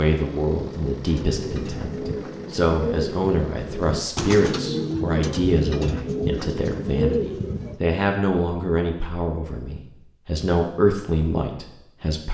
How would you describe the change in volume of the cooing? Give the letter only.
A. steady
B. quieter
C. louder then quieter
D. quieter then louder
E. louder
E.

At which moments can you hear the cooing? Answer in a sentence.
You can hear the cooing from 1.1 to 7.8 s.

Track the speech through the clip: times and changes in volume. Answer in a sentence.
You can hear the speech from 0.0 to 12.2 s, at a steady volume.